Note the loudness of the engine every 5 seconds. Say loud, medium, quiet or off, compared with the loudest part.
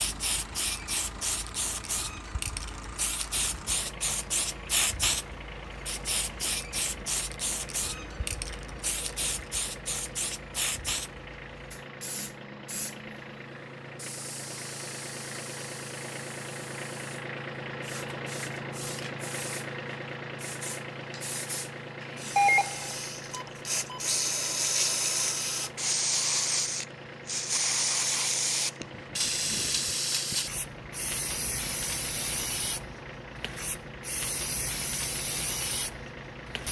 medium, medium, medium, loud, loud, medium, medium, medium.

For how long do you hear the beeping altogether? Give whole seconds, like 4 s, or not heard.
2 s.